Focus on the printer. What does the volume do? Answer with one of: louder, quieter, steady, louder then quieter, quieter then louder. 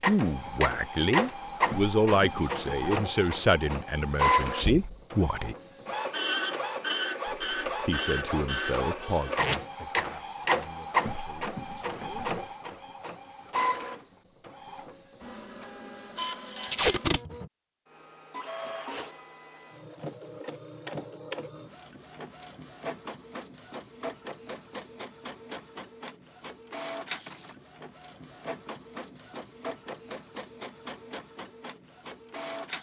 quieter.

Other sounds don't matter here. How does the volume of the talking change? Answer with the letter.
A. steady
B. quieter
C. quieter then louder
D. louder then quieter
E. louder
B.